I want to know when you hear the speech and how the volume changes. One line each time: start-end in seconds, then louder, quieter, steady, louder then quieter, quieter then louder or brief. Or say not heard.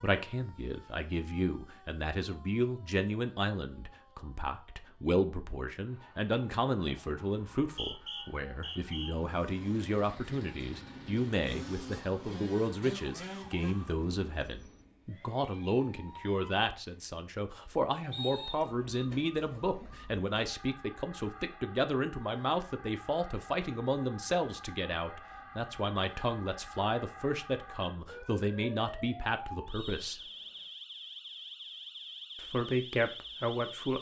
0.0-30.2 steady
32.4-33.9 brief.